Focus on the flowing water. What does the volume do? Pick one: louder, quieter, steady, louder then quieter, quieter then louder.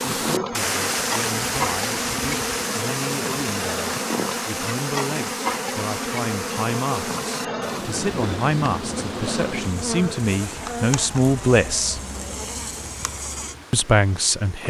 quieter.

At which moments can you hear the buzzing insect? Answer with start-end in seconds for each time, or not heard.
0.0-14.6.